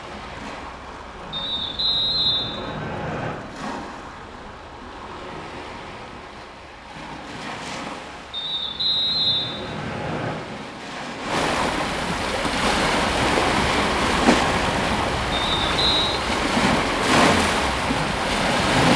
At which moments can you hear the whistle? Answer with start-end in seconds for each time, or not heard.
1.3-3.4, 8.3-10.3, 15.3-16.1.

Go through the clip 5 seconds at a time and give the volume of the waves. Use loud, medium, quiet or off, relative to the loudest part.
quiet, quiet, loud, loud.